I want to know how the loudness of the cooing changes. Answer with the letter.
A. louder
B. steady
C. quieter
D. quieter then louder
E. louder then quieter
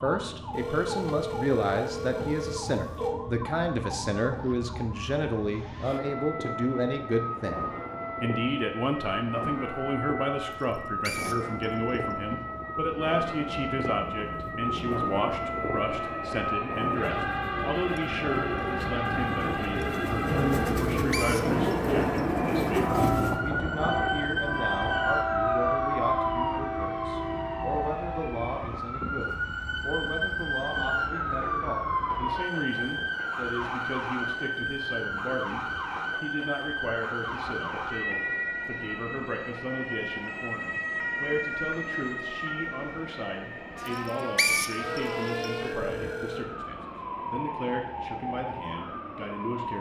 A.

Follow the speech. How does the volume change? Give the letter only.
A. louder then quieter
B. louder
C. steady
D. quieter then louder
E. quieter
E.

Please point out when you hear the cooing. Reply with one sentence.
The cooing can be heard from 14.2 to 23.4 s.